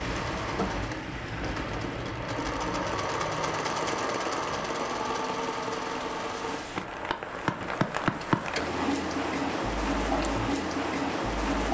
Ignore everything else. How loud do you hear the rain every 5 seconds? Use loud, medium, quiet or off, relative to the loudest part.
medium, loud, loud.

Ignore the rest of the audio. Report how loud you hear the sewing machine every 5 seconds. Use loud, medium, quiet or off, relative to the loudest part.
loud, loud, off.